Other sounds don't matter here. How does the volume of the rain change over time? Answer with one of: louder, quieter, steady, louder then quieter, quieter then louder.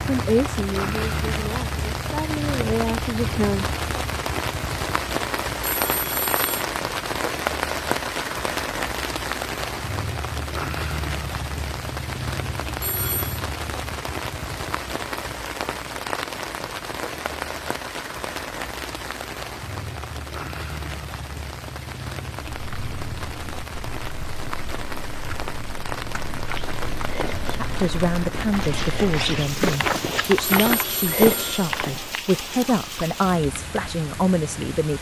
quieter.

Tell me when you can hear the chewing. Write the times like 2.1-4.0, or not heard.
not heard.